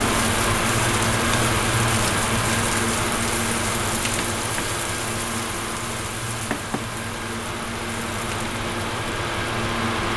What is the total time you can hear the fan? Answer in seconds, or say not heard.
10 s.